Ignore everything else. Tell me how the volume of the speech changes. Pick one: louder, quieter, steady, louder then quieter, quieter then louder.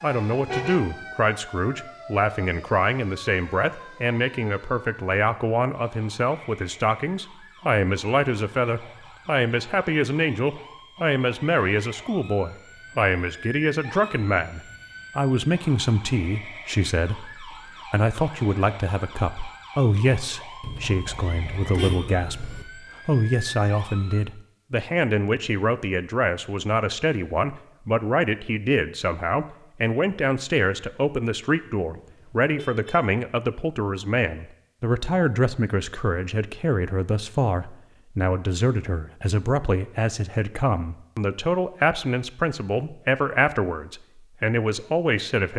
steady.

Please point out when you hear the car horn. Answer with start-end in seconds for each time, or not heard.
0.5-0.9, 20.6-22.6, 31.9-33.0.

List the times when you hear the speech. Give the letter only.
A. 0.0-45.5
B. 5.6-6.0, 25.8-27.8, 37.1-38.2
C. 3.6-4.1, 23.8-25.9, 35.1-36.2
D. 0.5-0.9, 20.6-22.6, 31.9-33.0
A.